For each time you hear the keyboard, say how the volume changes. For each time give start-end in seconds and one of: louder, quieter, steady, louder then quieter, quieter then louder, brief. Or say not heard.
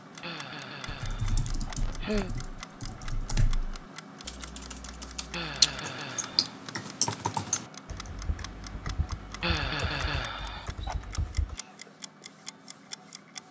0.8-11.6 louder then quieter.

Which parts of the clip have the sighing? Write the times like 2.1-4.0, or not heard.
0.2-2.3, 5.3-6.6, 9.4-11.1.